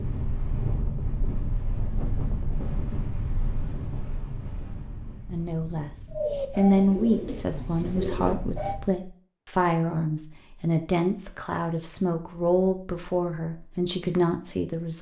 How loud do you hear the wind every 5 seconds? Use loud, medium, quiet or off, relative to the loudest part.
loud, medium, off.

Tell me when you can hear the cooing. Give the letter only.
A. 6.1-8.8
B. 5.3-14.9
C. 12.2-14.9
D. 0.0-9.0
A.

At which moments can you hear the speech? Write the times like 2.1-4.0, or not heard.
5.3-14.9.